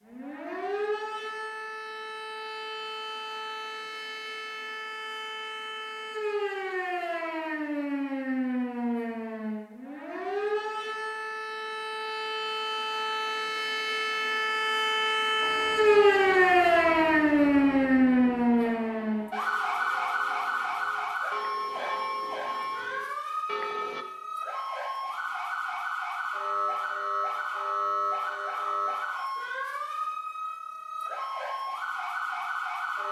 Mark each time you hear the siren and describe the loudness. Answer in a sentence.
The siren can be heard from 0.0 to 33.0 s, getting louder then quieter.